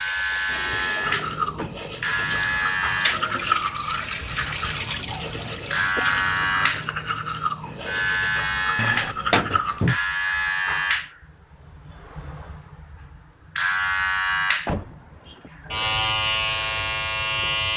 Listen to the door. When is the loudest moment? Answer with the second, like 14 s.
9 s.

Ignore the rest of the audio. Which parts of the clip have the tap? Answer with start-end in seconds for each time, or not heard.
0.0-7.0.